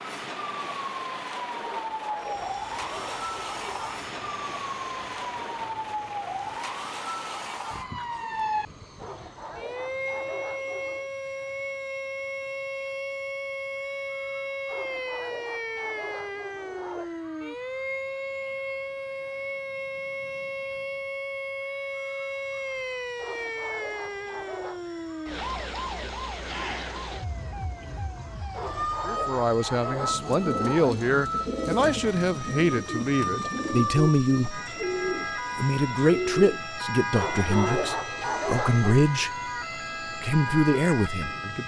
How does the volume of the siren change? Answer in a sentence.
The loudness of the siren stays about the same.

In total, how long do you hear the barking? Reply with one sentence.
You can hear the barking for 13 seconds altogether.